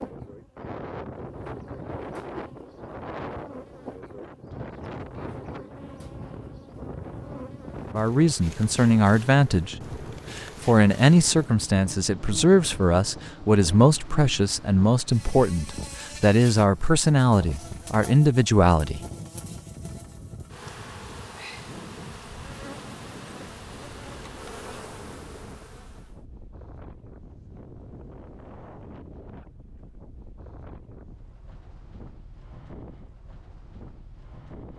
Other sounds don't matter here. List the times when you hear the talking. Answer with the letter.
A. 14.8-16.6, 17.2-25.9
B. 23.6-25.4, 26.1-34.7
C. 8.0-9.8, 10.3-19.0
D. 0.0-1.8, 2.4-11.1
C.